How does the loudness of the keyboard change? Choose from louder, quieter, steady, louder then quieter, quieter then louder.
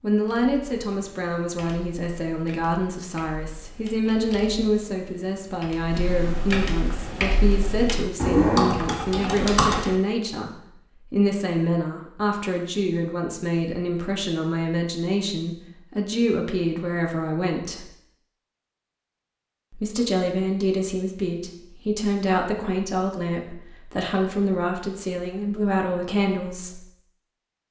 louder.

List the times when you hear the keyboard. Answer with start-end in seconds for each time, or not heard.
0.2-9.9.